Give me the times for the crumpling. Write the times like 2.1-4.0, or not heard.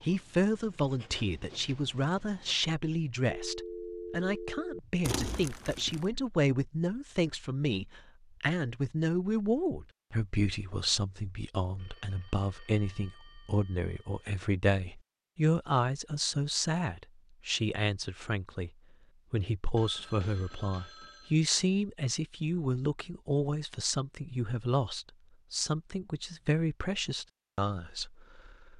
5.0-6.0.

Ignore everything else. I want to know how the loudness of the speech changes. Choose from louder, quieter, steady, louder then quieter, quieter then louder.
steady.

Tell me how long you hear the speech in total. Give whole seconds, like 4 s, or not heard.
28 s.